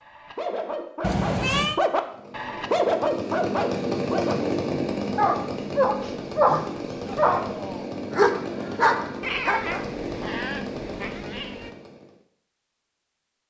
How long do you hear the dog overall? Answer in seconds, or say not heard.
10 s.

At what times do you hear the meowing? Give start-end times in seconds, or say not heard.
1.0-1.8, 6.0-6.8, 9.2-11.7.